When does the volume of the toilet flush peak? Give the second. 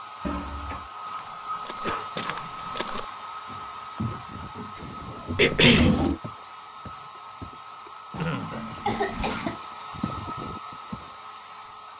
6 s.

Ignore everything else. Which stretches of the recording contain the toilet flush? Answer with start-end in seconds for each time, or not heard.
0.2-0.9, 5.0-6.2, 8.2-9.6.